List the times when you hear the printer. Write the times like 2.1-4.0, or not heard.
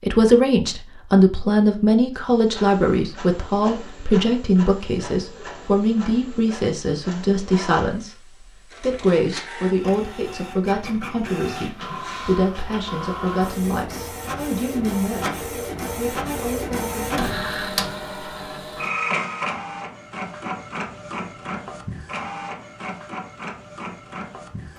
2.1-24.7.